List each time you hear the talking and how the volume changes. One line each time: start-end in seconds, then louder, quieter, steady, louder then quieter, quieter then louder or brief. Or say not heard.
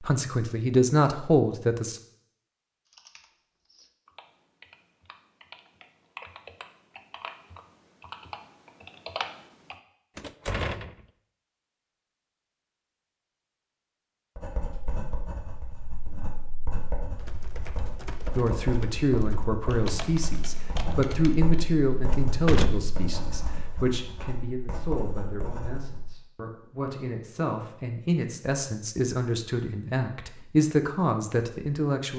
0.0-2.0 brief
18.4-32.1 quieter then louder.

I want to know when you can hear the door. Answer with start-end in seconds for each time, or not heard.
10.2-10.9, 21.9-23.6.